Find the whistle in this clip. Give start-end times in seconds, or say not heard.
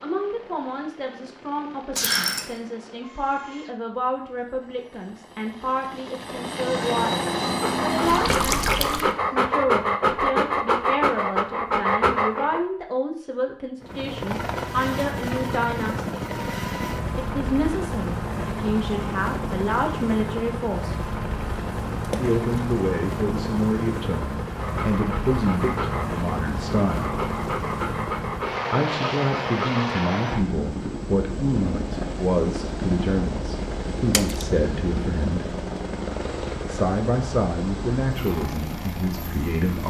1.9-2.5.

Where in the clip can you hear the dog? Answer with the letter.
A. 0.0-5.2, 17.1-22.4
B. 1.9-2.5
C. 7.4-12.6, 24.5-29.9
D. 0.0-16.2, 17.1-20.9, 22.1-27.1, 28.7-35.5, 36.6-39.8
C.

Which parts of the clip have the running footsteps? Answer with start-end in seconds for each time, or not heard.
not heard.